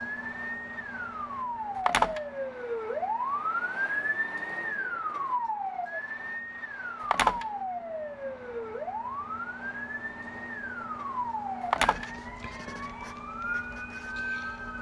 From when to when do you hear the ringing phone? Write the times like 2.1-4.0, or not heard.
1.8-2.2, 7.0-7.5, 11.6-12.1.